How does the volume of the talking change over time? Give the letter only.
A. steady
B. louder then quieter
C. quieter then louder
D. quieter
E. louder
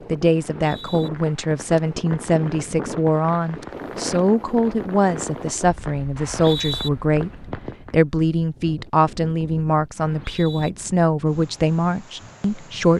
A.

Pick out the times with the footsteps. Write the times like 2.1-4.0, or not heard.
not heard.